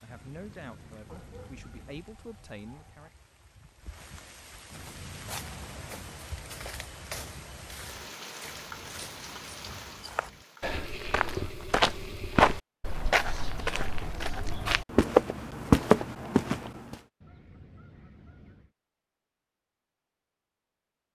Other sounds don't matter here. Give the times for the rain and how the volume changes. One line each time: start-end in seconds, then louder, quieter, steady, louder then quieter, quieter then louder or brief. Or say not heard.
0.0-10.8 louder.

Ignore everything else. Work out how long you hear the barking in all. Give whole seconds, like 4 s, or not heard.
2 s.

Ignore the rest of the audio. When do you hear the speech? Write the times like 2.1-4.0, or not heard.
0.0-3.1.